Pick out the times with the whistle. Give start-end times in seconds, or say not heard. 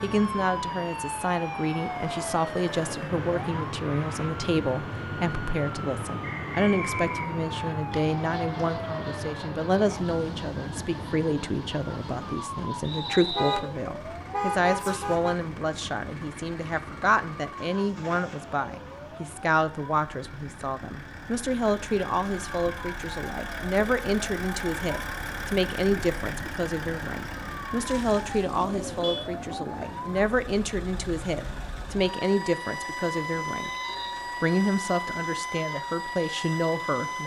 6.2-7.8, 12.8-13.6, 33.5-34.2.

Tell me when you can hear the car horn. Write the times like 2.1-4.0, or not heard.
13.3-15.4, 27.9-29.3.